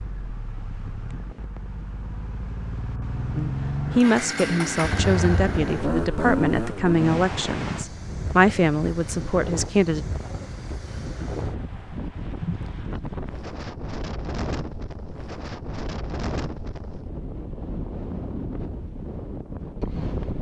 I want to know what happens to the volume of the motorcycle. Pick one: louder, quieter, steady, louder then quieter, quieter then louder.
louder.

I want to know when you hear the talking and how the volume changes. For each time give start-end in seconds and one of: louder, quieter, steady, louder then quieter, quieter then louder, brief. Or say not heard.
3.4-10.1 steady.